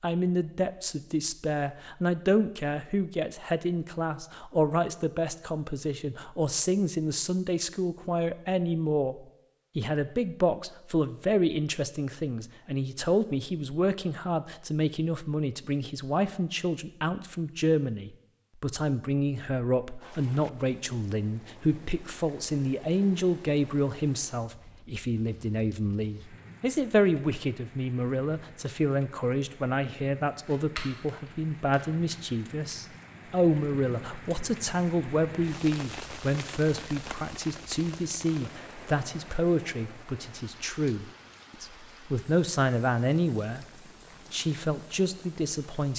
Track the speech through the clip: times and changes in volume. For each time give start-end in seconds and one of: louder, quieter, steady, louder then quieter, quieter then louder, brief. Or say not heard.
0.0-43.6 steady
44.3-45.9 brief.